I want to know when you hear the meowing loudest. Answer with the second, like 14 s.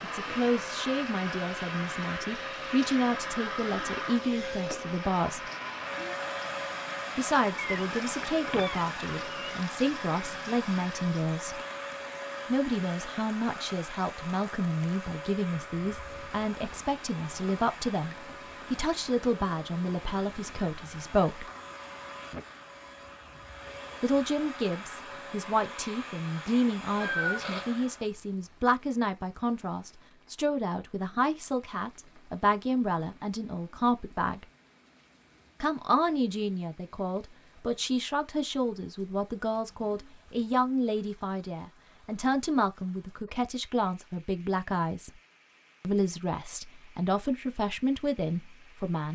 27 s.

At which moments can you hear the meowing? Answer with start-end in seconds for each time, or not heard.
7.5-9.6, 27.0-27.7.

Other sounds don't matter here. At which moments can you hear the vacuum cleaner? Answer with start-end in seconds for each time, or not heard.
0.0-28.1.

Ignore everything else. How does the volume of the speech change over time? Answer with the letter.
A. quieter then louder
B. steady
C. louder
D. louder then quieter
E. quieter
B.